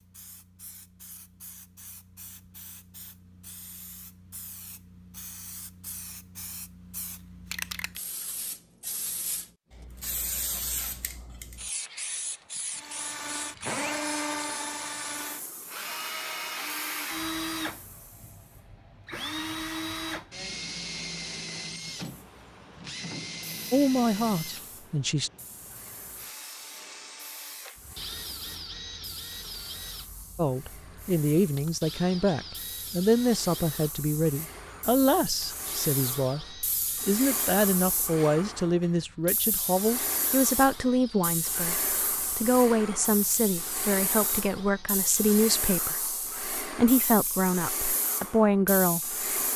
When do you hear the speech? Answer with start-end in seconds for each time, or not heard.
23.7-25.3, 30.4-49.1.